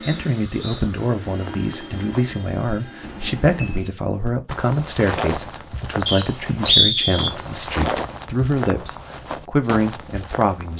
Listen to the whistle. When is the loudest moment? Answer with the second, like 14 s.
7 s.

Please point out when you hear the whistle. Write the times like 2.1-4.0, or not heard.
0.0-0.8, 6.0-7.3.